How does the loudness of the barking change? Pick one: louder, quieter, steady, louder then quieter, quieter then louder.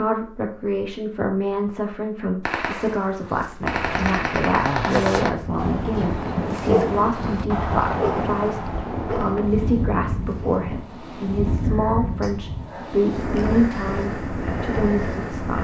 quieter.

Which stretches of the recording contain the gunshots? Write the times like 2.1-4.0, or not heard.
2.5-5.3.